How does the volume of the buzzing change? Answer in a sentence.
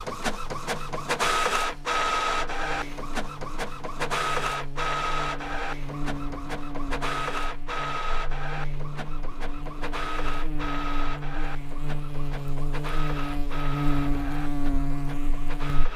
The volume of the buzzing goes up.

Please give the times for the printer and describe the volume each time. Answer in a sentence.
The printer can be heard from 0.0 to 15.9 s, getting quieter.